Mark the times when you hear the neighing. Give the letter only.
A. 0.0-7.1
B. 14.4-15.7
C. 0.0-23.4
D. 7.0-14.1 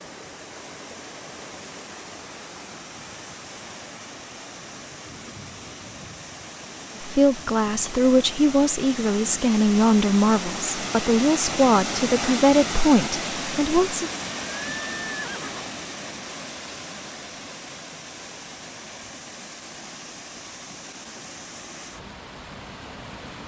B.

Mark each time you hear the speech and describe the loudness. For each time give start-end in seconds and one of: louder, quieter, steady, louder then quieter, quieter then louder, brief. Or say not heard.
7.0-14.1 steady.